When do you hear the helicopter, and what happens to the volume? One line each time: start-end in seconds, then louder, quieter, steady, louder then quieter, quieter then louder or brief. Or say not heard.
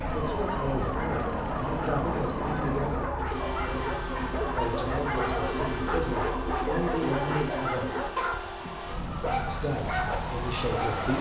0.0-11.1 steady.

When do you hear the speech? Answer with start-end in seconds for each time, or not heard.
0.0-2.9, 4.5-7.9, 9.4-11.1.